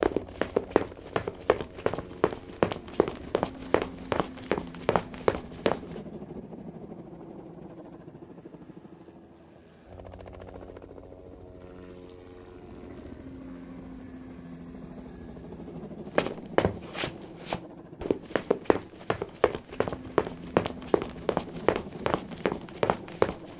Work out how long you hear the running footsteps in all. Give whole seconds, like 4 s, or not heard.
13 s.